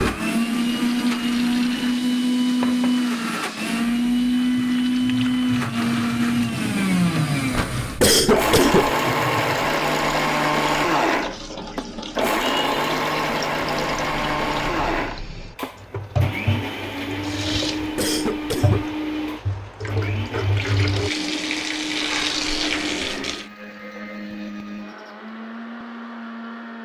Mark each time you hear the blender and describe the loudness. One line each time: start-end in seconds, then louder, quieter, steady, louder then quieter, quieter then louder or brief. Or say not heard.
0.0-26.8 quieter.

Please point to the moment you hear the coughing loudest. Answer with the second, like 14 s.
8 s.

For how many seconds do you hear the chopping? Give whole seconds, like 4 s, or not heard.
not heard.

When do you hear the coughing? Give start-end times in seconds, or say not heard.
7.5-8.9, 17.8-18.9.